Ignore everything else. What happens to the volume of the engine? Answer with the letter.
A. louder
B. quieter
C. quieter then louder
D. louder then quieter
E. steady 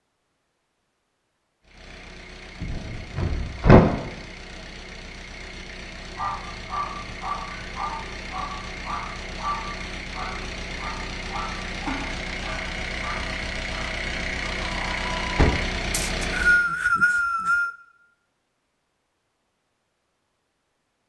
A.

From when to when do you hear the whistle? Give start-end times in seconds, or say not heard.
15.9-17.8.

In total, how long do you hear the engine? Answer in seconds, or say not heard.
15 s.